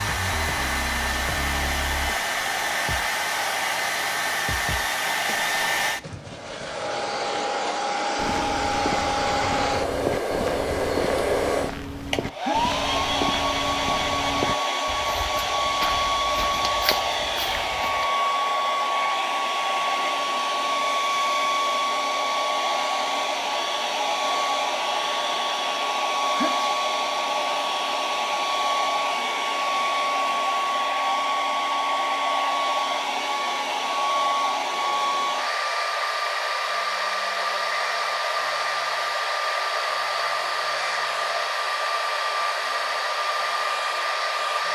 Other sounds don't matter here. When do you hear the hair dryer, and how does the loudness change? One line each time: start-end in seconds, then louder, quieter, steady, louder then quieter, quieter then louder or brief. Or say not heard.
0.0-44.6 steady.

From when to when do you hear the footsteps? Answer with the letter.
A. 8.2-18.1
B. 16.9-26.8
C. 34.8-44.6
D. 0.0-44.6
A.